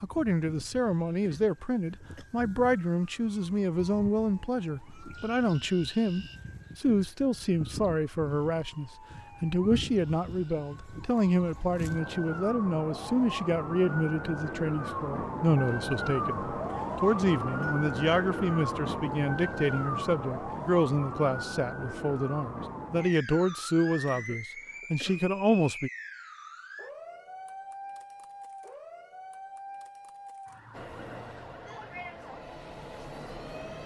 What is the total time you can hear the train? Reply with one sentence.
You can hear the train for 3 seconds altogether.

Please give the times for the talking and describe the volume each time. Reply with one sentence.
You can hear the talking from 0.0 to 25.9 s, at a steady volume.